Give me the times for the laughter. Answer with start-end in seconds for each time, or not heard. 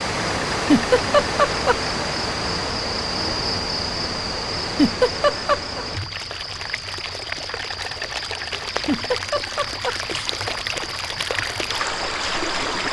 0.5-1.8, 4.6-5.8, 8.7-10.3.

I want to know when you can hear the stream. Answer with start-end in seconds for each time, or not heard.
0.0-12.8.